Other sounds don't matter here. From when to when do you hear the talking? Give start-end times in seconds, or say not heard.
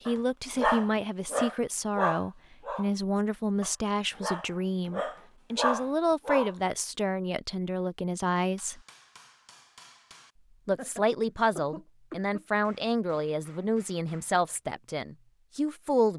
0.1-8.8, 10.7-16.1.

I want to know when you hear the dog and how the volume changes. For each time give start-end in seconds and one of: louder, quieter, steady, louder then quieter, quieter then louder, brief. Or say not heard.
0.1-6.5 quieter then louder.